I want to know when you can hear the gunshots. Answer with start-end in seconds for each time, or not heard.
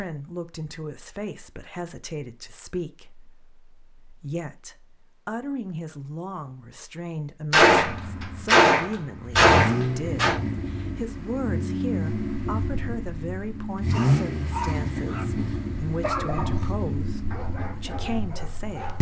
7.5-10.3.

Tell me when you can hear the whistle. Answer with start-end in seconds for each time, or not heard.
not heard.